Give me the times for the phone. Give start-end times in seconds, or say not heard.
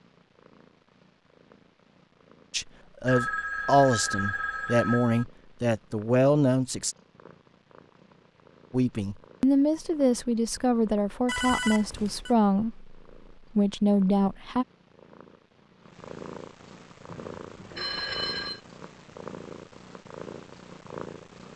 3.0-5.2, 11.2-12.3, 17.1-18.6.